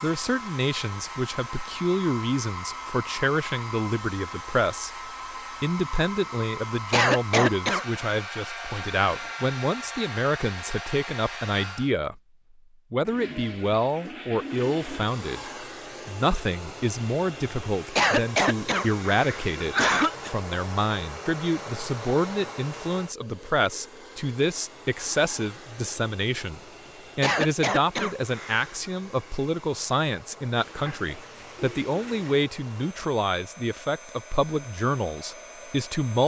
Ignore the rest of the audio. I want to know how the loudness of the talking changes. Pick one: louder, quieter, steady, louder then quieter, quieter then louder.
steady.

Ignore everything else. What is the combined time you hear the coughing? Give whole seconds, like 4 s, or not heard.
5 s.